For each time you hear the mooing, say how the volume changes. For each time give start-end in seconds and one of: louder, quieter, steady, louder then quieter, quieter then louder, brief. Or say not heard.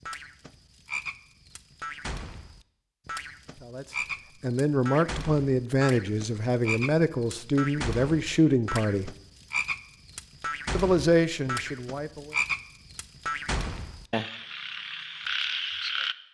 not heard.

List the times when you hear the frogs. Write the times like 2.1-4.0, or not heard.
0.0-16.1.